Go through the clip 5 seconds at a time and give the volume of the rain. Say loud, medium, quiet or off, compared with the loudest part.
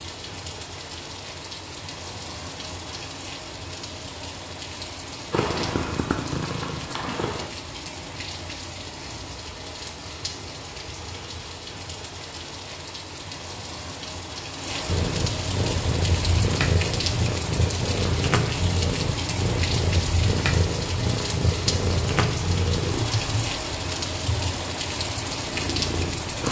medium, medium, medium, loud, loud, loud.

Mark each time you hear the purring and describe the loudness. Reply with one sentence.
The purring can be heard briefly from 5.3 to 7.5 s; and from 14.8 to 26.4 s, getting quieter.